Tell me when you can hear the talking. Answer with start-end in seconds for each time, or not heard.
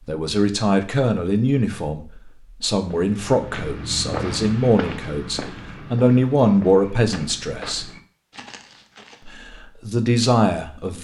0.1-7.9, 9.2-11.0.